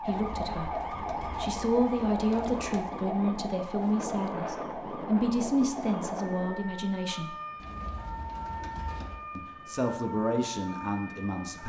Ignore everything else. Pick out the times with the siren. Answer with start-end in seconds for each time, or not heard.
0.0-11.6.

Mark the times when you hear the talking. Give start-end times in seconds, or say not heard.
0.0-7.3, 9.3-11.6.